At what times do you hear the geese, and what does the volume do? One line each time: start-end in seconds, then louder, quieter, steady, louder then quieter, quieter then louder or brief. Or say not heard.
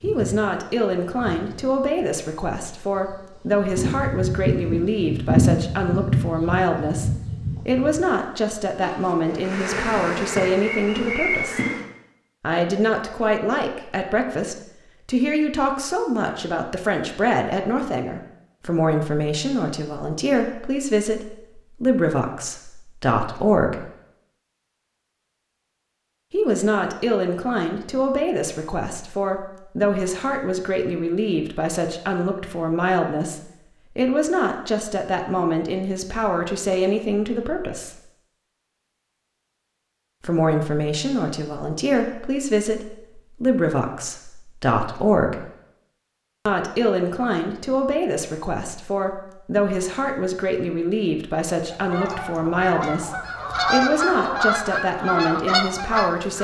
51.7-56.3 louder.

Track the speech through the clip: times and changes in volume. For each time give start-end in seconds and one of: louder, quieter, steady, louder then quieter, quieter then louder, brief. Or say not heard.
0.0-11.6 steady
12.4-23.9 steady
26.3-38.0 steady
40.2-45.5 steady
46.5-56.3 steady.